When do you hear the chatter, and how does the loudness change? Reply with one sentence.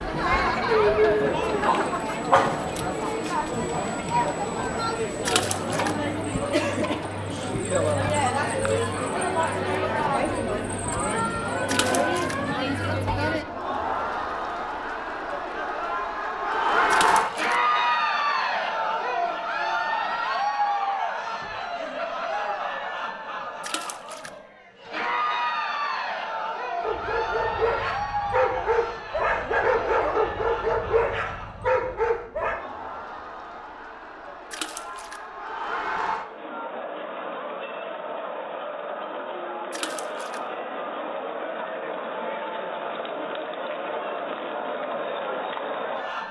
You can hear the chatter from 0.0 to 46.2 s, getting quieter.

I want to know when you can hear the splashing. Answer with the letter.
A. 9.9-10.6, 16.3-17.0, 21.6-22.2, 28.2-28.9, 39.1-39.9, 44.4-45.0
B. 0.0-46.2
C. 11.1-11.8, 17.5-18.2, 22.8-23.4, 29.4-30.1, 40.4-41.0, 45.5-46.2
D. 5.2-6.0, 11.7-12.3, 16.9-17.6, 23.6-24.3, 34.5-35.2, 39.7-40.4
D.